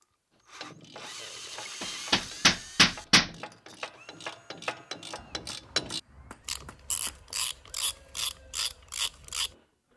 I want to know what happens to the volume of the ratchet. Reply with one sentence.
The volume of the ratchet goes up.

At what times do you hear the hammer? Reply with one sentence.
You can hear the hammer from 1.8 to 3.3 s and from 5.2 to 7.2 s.